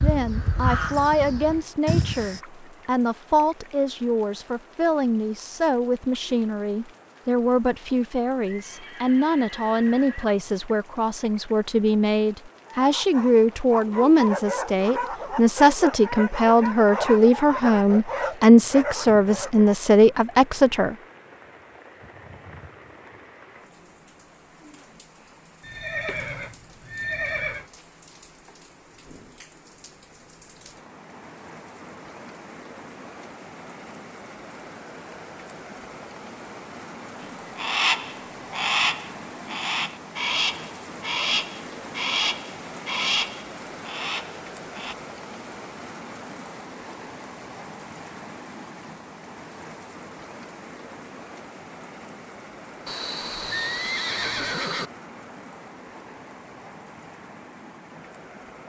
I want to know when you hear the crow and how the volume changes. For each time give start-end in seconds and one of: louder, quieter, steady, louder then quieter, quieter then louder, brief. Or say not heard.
0.0-2.4 brief
37.5-45.0 quieter.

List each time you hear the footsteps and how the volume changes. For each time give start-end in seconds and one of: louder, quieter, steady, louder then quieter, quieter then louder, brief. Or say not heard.
not heard.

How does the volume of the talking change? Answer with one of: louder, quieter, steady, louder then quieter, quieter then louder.
louder.